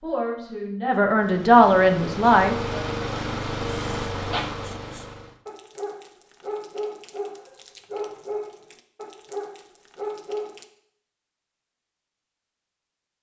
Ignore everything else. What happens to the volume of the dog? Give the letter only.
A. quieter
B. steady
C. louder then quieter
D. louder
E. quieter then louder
D.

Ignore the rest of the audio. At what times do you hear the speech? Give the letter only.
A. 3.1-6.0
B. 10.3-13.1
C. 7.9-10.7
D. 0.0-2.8
D.